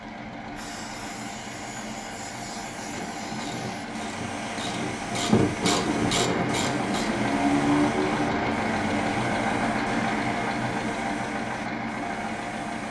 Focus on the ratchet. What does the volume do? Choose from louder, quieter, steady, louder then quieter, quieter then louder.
louder.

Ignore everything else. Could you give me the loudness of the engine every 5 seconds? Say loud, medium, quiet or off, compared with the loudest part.
medium, loud, loud.